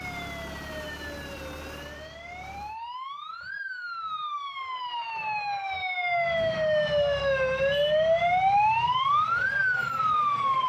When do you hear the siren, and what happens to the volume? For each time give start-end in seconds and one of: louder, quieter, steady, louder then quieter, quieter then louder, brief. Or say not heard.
0.0-10.6 louder.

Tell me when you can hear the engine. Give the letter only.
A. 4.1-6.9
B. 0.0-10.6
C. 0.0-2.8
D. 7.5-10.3
C.